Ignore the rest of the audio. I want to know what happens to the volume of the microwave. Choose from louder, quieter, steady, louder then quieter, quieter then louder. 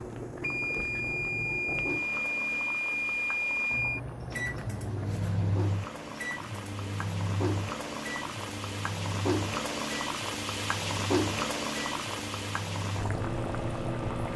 quieter.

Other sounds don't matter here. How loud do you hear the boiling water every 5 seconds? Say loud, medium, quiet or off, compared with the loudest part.
medium, loud, loud.